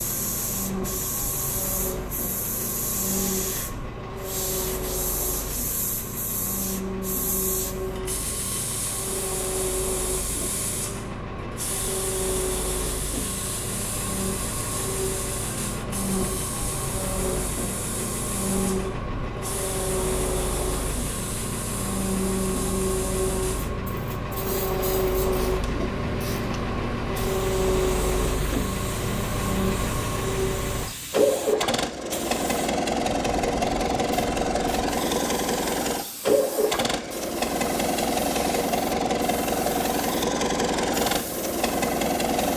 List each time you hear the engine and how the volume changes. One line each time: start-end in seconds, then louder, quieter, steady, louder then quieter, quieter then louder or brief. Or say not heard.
0.0-42.5 louder.